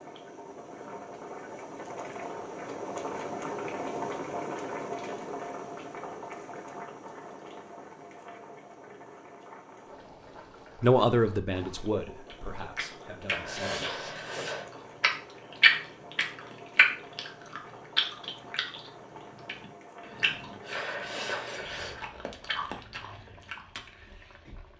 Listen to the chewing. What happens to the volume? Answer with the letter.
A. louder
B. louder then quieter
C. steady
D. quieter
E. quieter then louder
B.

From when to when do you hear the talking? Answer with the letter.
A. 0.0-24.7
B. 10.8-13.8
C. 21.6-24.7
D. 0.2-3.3
B.